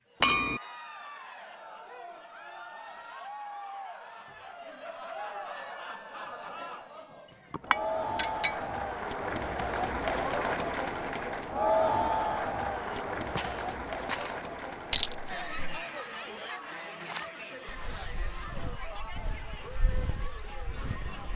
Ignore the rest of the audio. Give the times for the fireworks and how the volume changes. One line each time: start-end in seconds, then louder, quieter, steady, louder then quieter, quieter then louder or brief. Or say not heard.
not heard.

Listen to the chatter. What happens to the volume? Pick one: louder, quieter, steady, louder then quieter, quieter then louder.
louder then quieter.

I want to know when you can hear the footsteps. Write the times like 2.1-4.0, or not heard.
12.7-14.4, 17.0-21.3.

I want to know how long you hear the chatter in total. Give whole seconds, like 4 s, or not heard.
21 s.